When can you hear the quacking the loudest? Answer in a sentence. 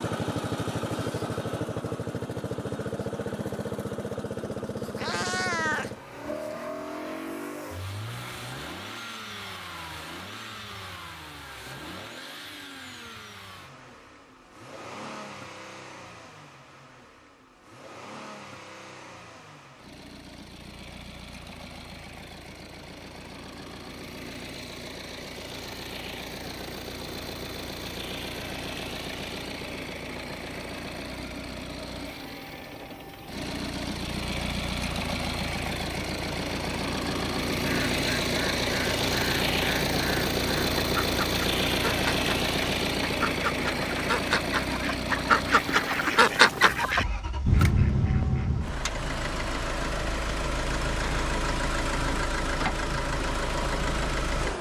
The loudest moment of the quacking is at 46 seconds.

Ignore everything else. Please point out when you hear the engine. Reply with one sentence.
You can hear the engine from 0.0 to 54.5 s.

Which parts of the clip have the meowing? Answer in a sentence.
You can hear the meowing from 4.5 to 6.7 s.